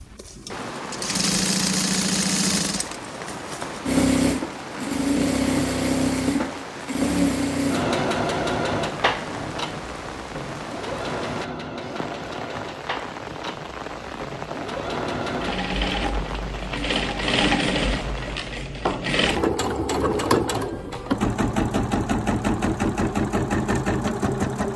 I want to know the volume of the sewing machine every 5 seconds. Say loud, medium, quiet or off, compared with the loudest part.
loud, loud, medium, loud, loud.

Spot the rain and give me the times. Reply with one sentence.
The rain can be heard from 0.0 to 18.6 s.